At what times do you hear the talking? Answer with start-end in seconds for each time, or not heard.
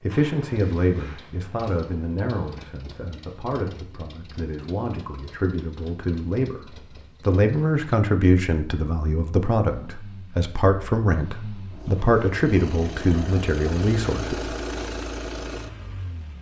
0.0-14.5.